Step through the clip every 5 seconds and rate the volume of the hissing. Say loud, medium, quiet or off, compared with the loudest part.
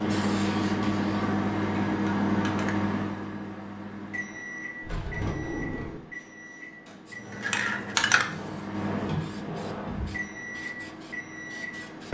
medium, loud, medium.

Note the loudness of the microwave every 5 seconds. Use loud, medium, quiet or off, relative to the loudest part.
loud, medium, medium.